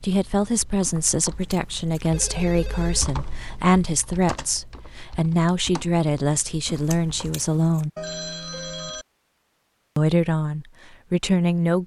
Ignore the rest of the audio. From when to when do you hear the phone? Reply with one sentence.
You can hear the phone from 2.1 to 3.0 s and from 8.0 to 9.1 s.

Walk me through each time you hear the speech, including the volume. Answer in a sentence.
You can hear the speech from 0.0 to 7.9 s, at a steady volume; and briefly from 9.9 to 11.8 s.